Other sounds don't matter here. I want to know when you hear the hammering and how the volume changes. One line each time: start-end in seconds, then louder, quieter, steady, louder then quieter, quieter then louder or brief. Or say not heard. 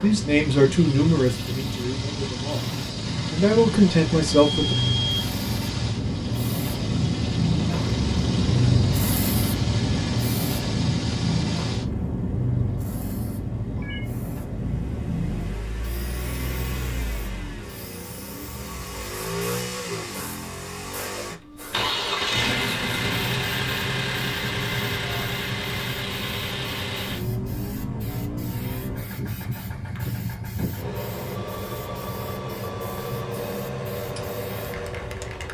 not heard.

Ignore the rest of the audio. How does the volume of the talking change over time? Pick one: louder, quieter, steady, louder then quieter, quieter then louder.
quieter then louder.